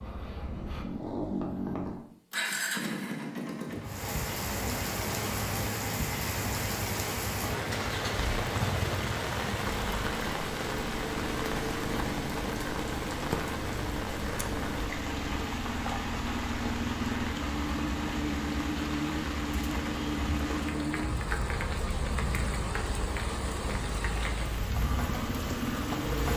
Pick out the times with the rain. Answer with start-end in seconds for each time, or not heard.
3.8-26.3.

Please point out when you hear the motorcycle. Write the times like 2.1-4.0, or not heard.
0.0-26.3.